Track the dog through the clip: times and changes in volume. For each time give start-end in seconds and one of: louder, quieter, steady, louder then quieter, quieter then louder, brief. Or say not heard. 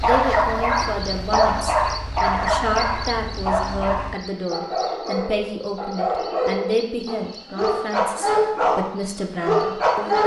0.0-10.2 quieter then louder.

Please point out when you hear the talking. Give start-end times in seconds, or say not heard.
0.0-10.2.